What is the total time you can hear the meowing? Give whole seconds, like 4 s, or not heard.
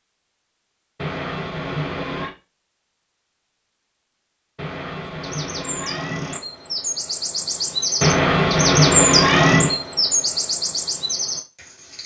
5 s.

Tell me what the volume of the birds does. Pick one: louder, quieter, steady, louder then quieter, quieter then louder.
louder then quieter.